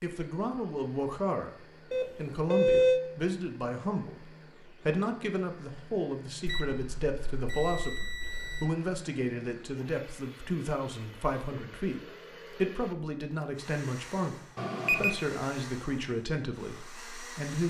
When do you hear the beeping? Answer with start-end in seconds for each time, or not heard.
1.9-3.0, 6.5-8.7, 14.6-15.2.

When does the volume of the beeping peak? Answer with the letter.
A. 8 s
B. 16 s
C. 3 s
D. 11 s
C.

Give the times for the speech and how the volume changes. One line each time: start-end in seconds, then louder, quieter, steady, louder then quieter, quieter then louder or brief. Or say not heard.
0.0-17.6 steady.